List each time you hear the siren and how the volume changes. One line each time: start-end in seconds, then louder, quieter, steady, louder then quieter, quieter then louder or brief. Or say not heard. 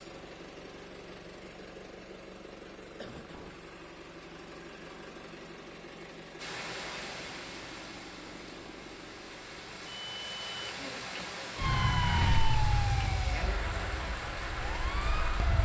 11.6-15.6 quieter then louder.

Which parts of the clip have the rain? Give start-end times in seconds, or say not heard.
6.3-15.6.